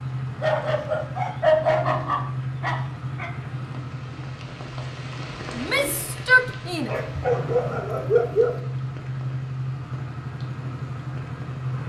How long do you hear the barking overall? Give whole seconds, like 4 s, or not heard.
5 s.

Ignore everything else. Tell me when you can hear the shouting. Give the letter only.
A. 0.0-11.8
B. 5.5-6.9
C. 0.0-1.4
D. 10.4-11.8
B.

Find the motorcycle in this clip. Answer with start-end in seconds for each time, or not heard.
0.0-11.8.